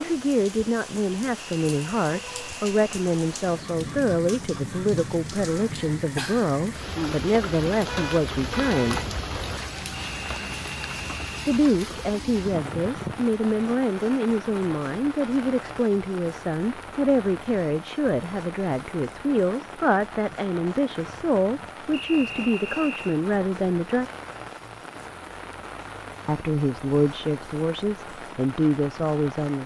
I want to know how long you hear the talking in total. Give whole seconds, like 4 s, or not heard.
25 s.